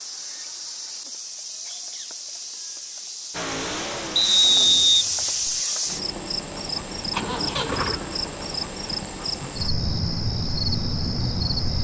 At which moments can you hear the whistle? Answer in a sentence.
The whistle can be heard from 4.2 to 5.5 s.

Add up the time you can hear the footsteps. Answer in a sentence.
The footsteps can't be heard in this clip.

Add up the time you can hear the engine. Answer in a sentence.
You can hear the engine for 4 seconds altogether.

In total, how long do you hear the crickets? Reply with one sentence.
The crickets can be heard for 12 seconds in total.